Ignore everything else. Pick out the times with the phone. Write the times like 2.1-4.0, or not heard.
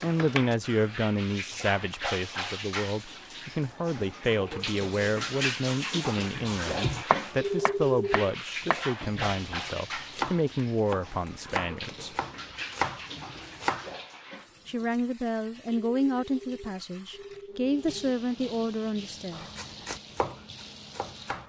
7.4-8.3, 15.9-18.1.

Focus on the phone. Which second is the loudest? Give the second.
8 s.